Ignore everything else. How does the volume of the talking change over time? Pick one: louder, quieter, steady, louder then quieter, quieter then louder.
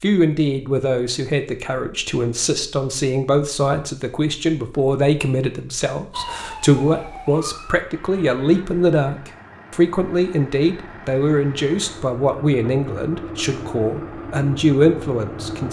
steady.